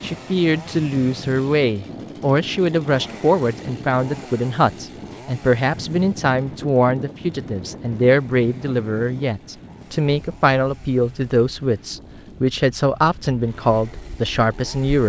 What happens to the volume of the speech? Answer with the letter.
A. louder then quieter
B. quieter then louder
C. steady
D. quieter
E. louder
C.